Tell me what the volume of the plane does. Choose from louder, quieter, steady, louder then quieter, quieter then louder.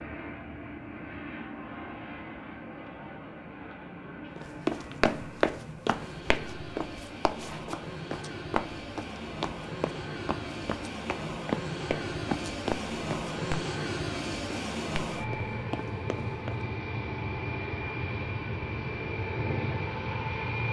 louder.